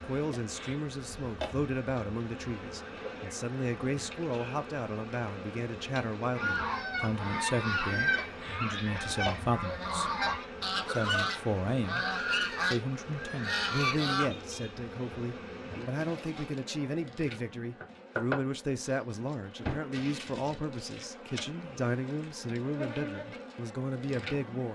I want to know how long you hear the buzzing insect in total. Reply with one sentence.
You can hear the buzzing insect for 25 seconds altogether.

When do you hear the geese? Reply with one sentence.
The geese can be heard from 6.3 to 14.7 s.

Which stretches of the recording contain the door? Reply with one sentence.
The door can be heard from 18.8 to 19.8 s.